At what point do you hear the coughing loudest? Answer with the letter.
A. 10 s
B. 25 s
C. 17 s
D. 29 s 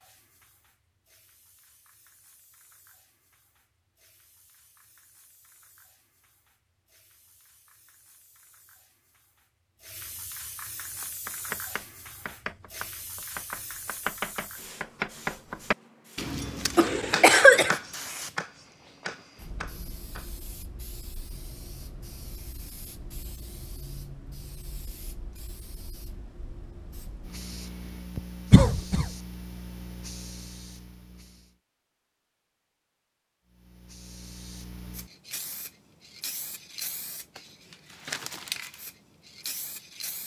C.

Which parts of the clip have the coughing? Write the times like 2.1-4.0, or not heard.
16.8-17.7, 28.5-29.1.